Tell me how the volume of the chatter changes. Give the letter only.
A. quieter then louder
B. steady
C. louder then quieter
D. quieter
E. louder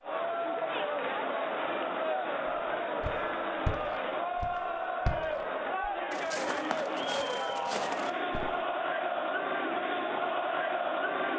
B.